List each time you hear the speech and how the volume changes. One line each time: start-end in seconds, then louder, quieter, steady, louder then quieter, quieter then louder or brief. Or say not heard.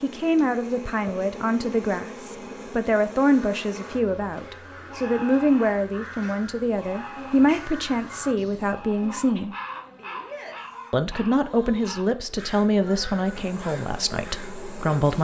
0.0-9.6 steady
10.9-15.1 quieter.